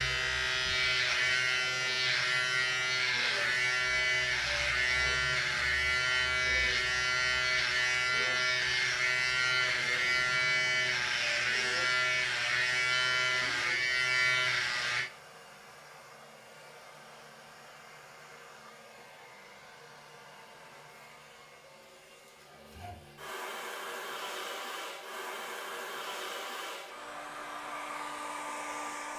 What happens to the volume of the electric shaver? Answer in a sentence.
The loudness of the electric shaver stays about the same.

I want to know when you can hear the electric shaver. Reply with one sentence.
You can hear the electric shaver from 0.0 to 15.1 s.